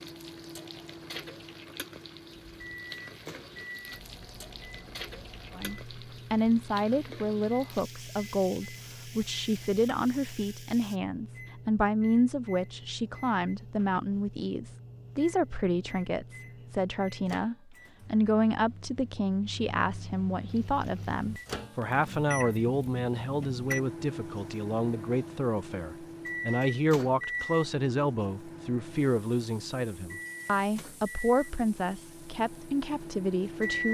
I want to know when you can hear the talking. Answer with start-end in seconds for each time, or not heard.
5.5-33.8.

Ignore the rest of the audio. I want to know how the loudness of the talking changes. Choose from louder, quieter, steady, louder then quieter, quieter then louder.
steady.